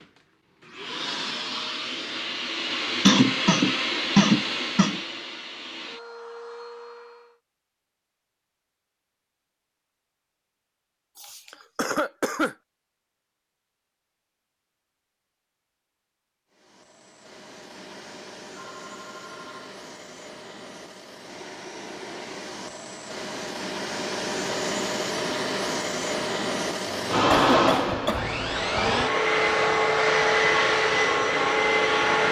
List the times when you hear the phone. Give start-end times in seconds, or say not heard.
18.6-19.7.